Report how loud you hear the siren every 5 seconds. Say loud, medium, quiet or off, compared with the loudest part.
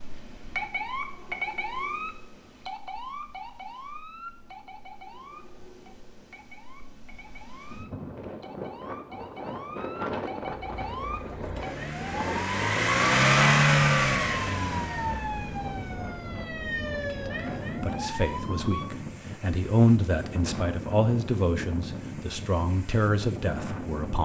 loud, medium, loud, loud, off.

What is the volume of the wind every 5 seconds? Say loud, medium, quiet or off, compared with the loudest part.
quiet, medium, loud, loud, loud.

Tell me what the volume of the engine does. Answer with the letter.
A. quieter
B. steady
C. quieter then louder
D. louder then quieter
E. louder
D.